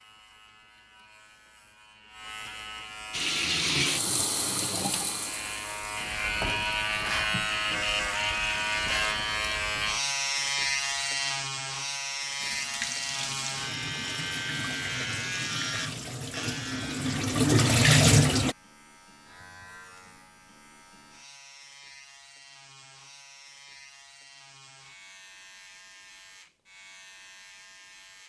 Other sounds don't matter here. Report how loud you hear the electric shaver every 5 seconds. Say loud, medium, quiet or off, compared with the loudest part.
quiet, loud, loud, medium, quiet, quiet.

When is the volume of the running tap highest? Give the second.
18 s.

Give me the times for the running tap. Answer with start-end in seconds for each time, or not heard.
3.1-8.9, 12.3-18.6.